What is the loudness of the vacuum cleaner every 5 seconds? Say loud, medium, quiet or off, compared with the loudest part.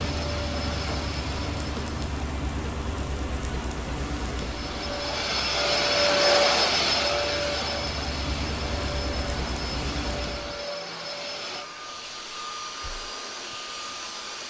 medium, loud, medium.